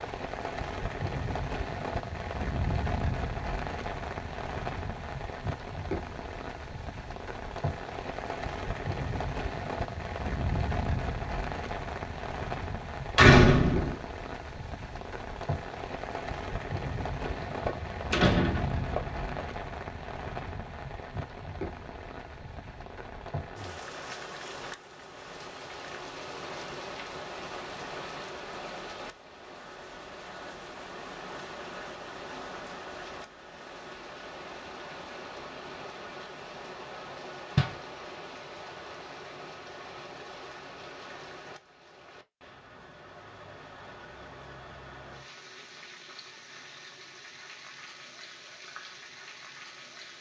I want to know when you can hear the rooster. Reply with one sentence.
You can't hear the rooster here.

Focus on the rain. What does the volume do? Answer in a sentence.
The loudness of the rain goes down.